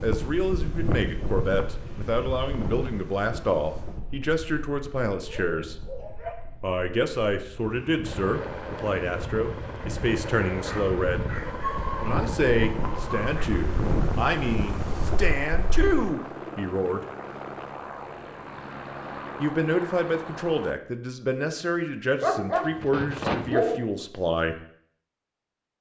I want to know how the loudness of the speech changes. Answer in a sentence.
The loudness of the speech stays about the same.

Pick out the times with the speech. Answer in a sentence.
You can hear the speech from 0.0 to 5.8 s, from 6.6 to 11.2 s, from 12.0 to 17.0 s and from 19.4 to 24.6 s.